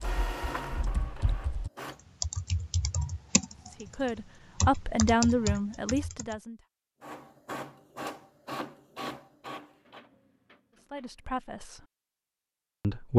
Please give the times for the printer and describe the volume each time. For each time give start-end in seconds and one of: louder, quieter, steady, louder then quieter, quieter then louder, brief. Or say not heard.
0.0-1.9 brief
7.0-11.3 quieter.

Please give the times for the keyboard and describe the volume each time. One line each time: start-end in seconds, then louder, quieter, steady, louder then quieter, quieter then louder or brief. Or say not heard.
0.0-6.3 louder.